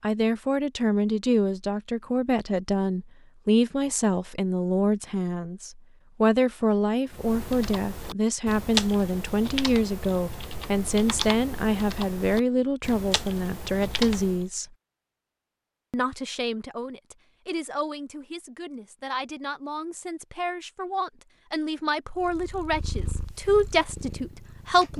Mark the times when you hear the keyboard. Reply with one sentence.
The keyboard can be heard from 7.1 to 14.4 s.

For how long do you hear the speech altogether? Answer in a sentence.
You can hear the speech for 24 seconds altogether.